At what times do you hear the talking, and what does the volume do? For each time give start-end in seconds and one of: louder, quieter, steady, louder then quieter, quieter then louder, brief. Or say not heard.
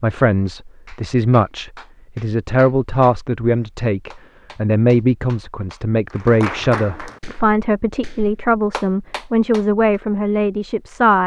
0.0-11.2 steady.